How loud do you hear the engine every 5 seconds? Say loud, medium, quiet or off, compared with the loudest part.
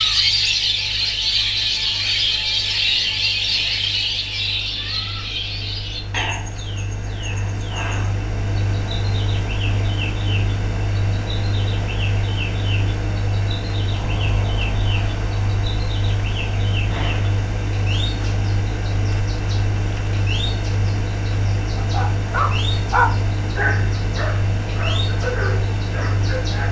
quiet, loud, loud, loud, loud, loud.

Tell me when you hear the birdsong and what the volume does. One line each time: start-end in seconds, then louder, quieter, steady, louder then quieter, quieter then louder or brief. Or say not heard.
0.0-26.6 quieter.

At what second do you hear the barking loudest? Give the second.
23 s.